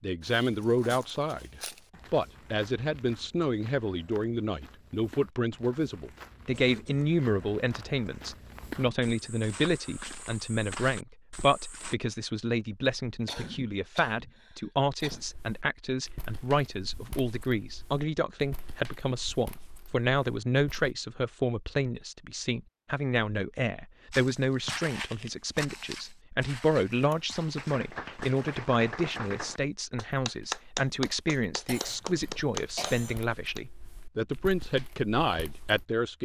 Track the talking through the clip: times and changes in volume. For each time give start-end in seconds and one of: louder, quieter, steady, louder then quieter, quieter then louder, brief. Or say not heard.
0.0-36.2 steady.